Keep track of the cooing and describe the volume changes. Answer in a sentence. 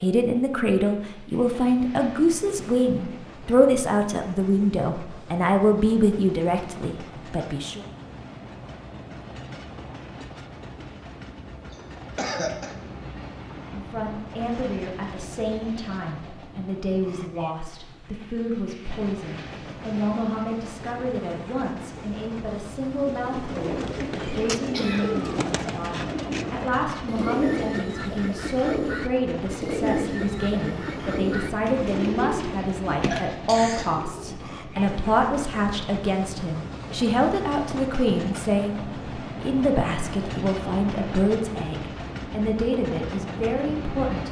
The volume of the cooing stays about the same.